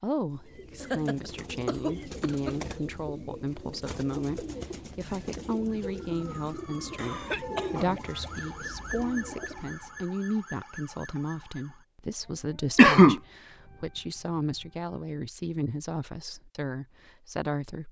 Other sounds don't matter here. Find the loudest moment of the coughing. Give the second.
13 s.